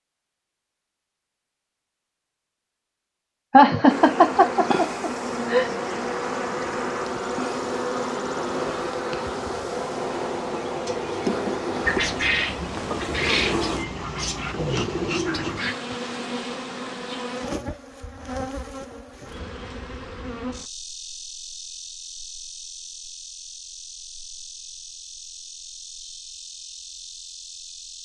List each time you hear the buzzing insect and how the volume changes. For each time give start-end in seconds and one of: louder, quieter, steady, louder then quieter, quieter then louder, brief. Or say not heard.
3.9-28.0 quieter.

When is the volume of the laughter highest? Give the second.
4 s.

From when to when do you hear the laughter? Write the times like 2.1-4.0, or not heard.
3.5-5.7.